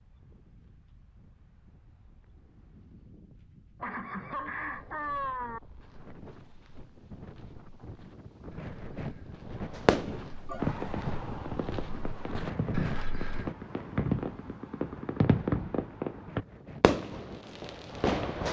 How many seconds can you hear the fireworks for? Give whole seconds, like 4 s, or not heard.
9 s.